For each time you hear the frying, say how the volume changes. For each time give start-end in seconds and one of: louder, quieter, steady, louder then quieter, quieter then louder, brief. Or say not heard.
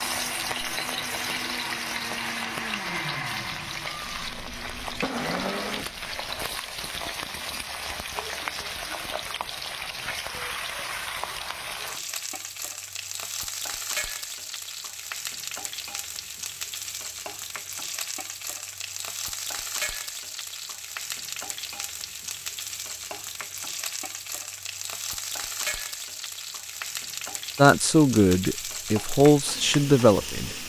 0.0-30.6 steady.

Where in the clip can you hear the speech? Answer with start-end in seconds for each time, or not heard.
27.6-30.6.